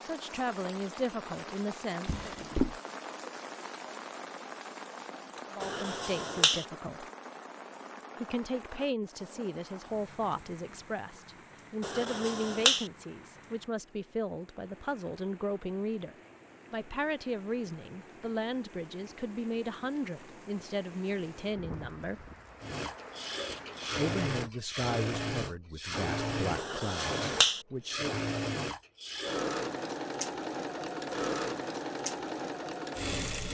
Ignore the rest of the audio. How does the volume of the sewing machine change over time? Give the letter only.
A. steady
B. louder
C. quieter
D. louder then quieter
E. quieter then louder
A.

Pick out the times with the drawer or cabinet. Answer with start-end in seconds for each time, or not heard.
2.0-2.8.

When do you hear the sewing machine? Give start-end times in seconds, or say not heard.
22.6-33.4.